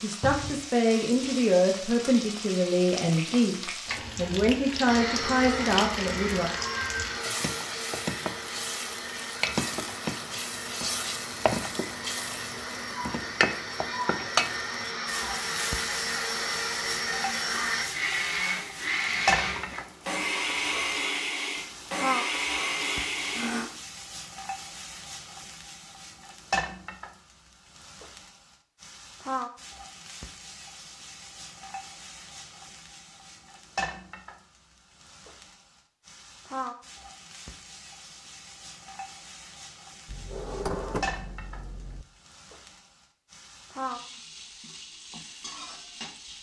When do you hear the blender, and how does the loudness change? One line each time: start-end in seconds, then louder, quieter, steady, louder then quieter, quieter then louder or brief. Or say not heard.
4.8-23.7 quieter then louder.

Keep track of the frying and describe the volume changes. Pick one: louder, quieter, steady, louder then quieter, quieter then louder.
quieter.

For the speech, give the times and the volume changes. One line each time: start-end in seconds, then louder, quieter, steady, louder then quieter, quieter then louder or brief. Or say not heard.
0.0-6.5 steady.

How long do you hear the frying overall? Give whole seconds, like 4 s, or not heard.
46 s.